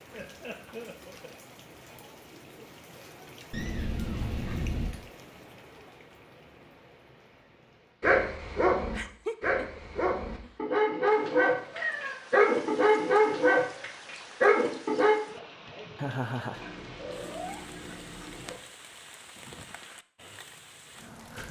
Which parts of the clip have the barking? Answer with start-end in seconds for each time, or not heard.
8.0-15.2.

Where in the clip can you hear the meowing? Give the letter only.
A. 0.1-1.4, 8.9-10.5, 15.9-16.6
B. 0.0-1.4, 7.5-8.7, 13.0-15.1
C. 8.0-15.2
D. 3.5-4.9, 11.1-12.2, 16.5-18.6
D.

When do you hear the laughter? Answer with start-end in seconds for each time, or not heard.
0.1-1.4, 8.9-10.5, 15.9-16.6.